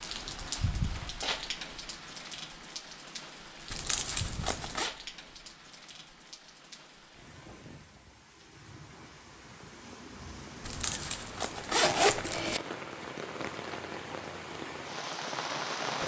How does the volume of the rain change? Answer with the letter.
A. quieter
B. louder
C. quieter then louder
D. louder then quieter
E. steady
C.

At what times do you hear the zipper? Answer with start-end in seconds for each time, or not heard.
3.7-4.9, 10.6-12.6.